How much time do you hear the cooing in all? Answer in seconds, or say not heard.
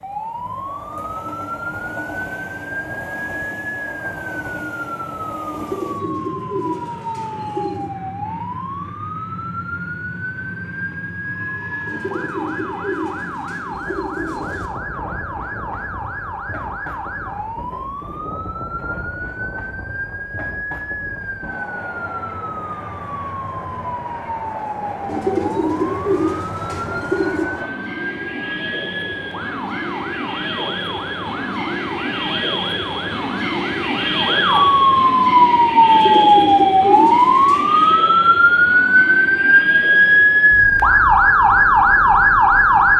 10 s.